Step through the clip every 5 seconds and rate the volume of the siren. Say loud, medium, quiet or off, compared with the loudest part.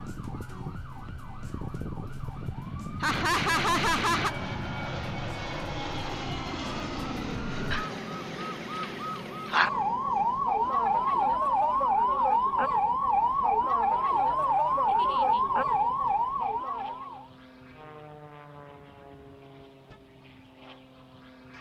quiet, medium, loud, loud, off.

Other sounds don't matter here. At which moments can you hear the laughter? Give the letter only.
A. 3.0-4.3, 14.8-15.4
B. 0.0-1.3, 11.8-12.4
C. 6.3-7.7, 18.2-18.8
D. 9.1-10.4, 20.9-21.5
A.